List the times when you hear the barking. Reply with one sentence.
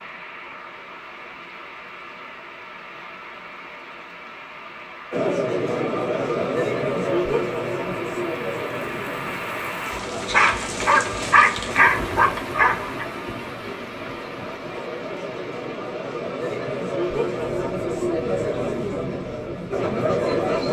You can hear the barking from 10.3 to 13.1 s.